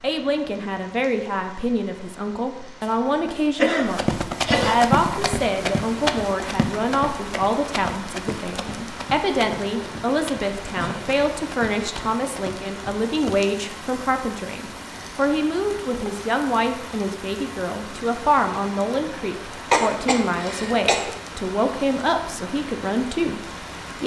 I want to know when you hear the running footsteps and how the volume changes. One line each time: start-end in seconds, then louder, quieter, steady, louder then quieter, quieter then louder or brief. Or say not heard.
3.9-13.4 quieter.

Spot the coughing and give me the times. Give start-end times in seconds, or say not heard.
2.8-4.8, 10.8-11.2, 19.7-21.1.